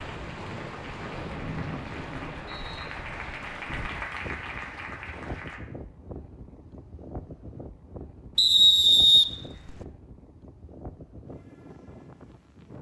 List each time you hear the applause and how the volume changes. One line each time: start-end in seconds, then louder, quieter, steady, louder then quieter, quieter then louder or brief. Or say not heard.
0.0-5.6 louder.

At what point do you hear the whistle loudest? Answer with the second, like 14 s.
9 s.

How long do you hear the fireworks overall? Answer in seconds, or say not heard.
not heard.